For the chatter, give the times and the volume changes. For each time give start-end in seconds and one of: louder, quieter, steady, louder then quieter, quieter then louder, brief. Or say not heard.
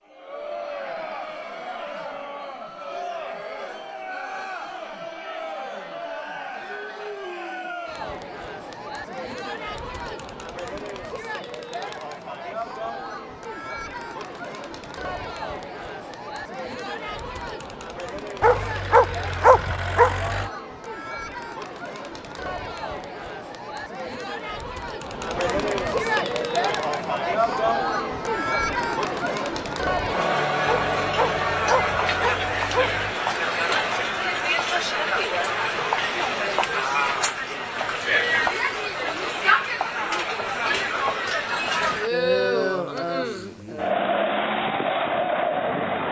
0.1-46.0 louder.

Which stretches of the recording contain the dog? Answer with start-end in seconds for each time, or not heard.
18.4-20.5, 30.6-33.1.